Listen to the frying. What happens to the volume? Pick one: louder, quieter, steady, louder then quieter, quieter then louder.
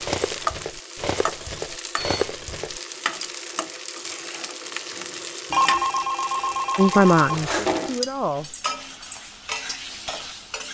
steady.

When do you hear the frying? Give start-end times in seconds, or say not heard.
0.0-10.7.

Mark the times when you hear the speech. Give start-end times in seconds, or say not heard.
6.8-8.4.